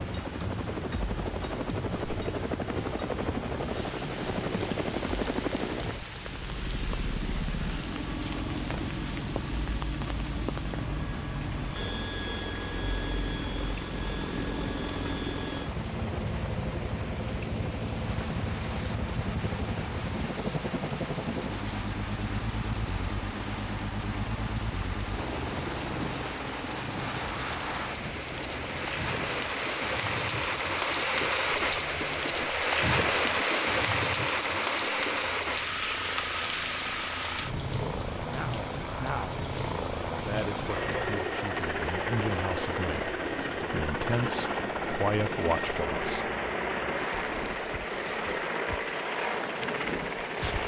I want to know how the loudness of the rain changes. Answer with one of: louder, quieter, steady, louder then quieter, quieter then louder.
louder then quieter.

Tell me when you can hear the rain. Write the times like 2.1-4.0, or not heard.
0.0-50.6.